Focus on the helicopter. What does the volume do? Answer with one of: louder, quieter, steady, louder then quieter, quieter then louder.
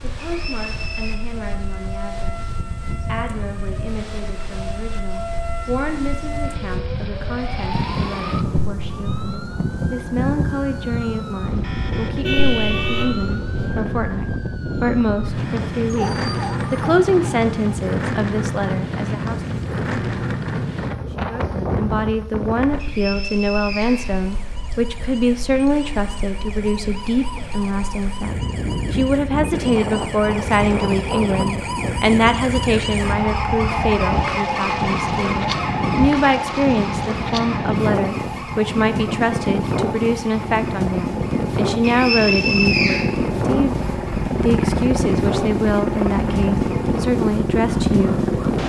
louder.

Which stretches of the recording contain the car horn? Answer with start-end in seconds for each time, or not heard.
12.1-13.8.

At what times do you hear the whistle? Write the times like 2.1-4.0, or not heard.
0.2-1.1, 22.8-24.8, 41.8-43.0.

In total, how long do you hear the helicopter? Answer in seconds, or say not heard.
8 s.